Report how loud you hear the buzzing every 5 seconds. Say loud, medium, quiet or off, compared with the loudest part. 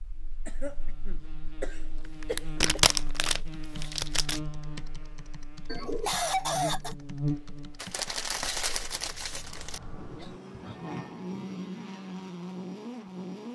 medium, loud, loud.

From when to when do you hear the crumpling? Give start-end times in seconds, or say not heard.
2.2-4.4, 7.8-9.8.